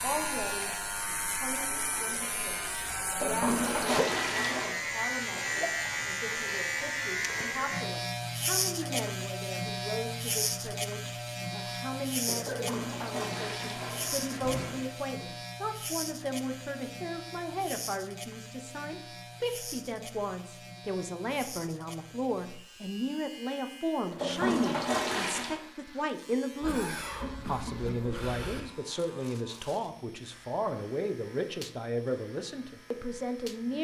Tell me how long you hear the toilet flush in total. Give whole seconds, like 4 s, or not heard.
6 s.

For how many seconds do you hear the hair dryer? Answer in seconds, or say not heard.
not heard.